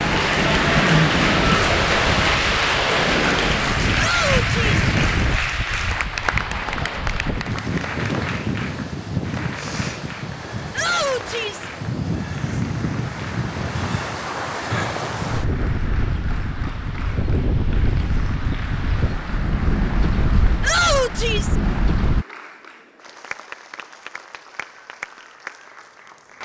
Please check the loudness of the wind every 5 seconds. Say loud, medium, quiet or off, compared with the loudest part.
loud, medium, medium, medium, medium, off.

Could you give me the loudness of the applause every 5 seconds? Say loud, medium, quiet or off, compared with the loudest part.
loud, medium, quiet, quiet, quiet, quiet.